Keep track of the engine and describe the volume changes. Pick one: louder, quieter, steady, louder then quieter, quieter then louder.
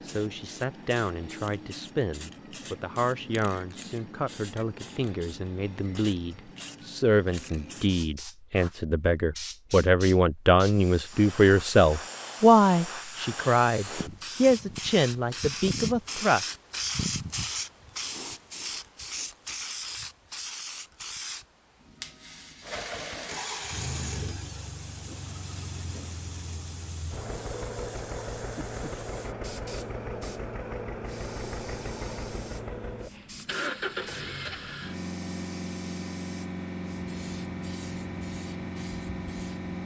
steady.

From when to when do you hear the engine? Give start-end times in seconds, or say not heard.
22.6-39.8.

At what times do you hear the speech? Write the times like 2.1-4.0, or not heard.
0.0-16.5.